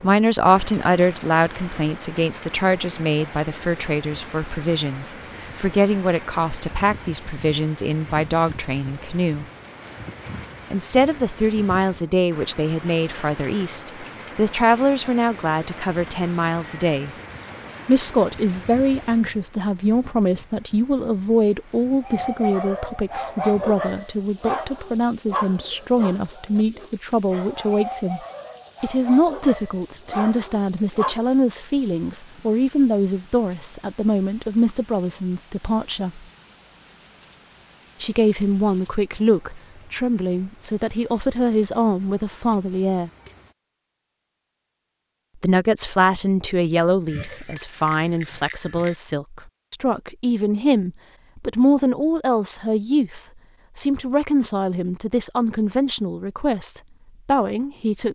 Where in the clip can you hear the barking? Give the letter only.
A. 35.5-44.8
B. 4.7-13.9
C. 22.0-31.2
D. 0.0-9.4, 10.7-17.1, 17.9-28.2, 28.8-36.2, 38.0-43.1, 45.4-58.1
C.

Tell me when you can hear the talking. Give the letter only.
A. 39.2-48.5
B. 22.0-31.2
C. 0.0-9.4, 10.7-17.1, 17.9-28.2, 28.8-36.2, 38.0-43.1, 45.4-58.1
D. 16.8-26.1
C.